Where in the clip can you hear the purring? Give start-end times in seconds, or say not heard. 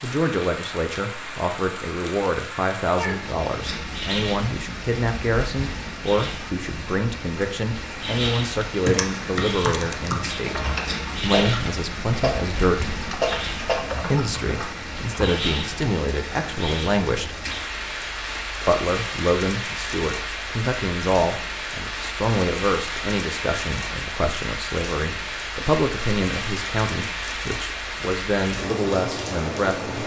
not heard.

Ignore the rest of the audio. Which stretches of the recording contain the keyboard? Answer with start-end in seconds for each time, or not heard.
8.8-15.3.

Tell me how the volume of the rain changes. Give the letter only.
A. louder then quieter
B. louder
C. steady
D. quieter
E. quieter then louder
C.